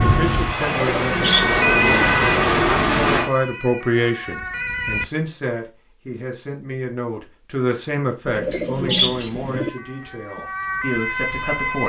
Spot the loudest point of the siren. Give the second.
2 s.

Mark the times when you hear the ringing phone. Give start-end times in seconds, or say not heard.
not heard.